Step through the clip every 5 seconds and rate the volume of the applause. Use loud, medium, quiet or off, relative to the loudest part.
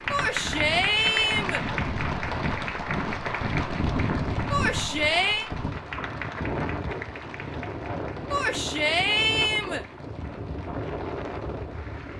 loud, medium, quiet.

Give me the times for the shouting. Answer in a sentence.
You can hear the shouting from 0.1 to 1.6 s, from 4.5 to 5.5 s and from 8.3 to 9.8 s.